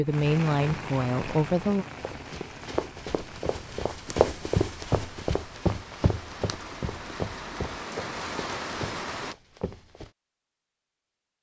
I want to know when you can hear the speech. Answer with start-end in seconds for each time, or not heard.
0.0-1.9.